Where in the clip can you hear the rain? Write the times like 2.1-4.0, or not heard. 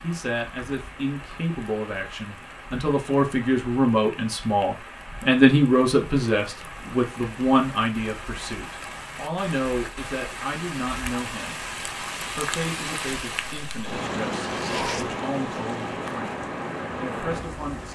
0.0-17.9.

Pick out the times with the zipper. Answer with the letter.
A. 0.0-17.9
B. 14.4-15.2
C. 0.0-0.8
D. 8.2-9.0
B.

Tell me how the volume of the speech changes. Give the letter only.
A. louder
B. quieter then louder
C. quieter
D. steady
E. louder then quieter
E.